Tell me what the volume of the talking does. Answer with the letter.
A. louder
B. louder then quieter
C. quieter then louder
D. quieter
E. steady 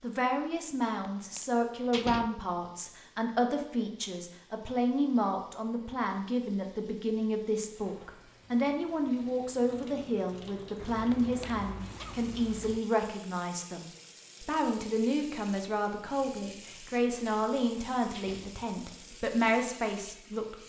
E.